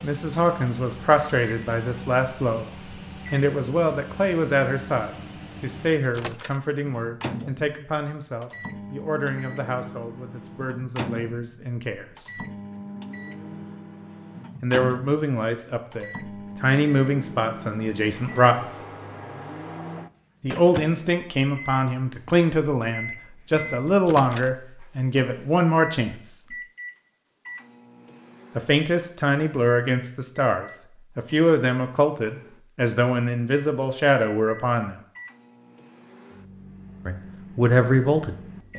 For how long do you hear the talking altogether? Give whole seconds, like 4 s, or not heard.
31 s.